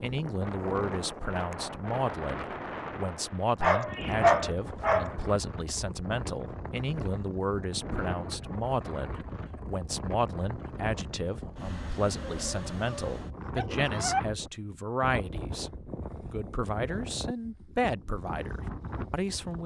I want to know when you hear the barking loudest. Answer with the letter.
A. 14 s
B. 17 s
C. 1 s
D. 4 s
D.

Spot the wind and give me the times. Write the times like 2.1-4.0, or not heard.
0.0-19.6.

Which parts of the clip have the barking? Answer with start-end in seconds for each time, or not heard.
3.6-5.2, 12.2-14.2.